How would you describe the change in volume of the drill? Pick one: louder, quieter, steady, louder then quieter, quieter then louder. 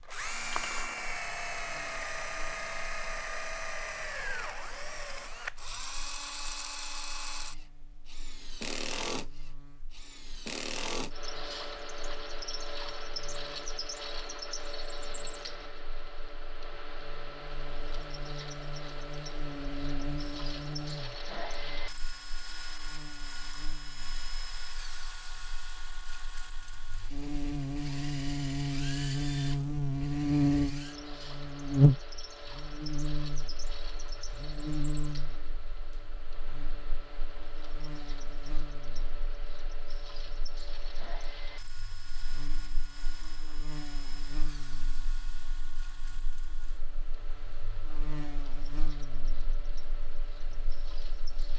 quieter.